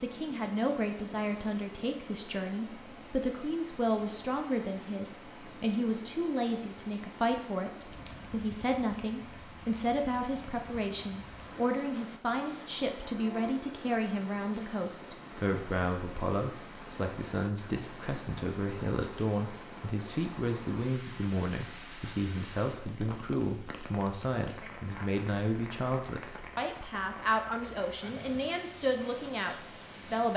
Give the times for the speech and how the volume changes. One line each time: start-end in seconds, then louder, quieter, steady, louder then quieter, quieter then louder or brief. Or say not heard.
0.0-30.3 steady.